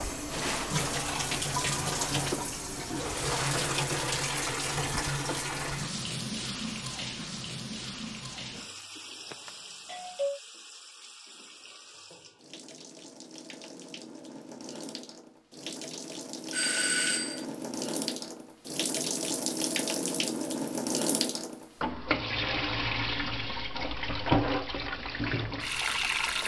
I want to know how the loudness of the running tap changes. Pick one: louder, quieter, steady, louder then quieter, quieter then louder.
quieter then louder.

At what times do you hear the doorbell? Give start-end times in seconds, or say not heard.
9.4-10.4, 16.5-17.4.